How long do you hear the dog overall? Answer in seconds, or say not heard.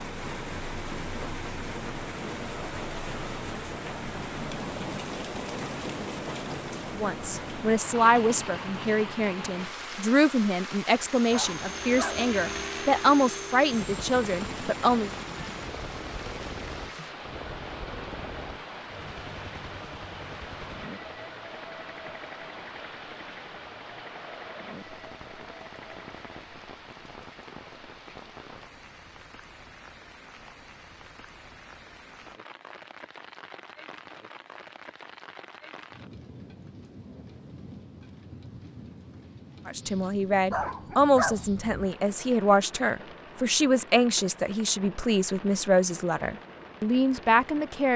3 s.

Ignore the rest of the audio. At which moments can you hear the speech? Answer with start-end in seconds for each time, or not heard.
7.0-15.1, 39.6-47.9.